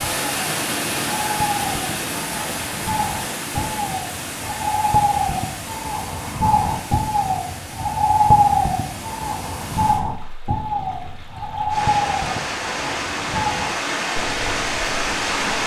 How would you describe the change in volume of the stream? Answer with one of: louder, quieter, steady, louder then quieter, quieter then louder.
quieter then louder.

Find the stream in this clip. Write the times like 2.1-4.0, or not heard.
0.0-15.6.